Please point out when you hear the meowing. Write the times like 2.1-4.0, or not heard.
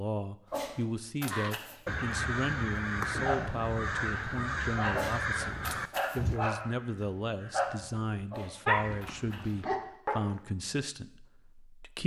0.5-2.0, 4.9-6.2, 8.2-9.7.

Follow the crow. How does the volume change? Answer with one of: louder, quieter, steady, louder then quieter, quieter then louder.
quieter.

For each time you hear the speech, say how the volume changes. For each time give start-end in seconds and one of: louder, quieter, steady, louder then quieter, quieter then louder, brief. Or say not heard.
0.0-12.0 steady.